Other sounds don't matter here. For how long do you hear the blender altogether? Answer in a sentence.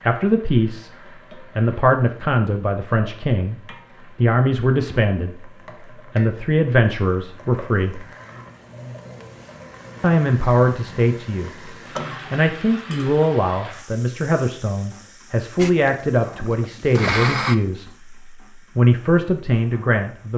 You can hear the blender for 2 seconds altogether.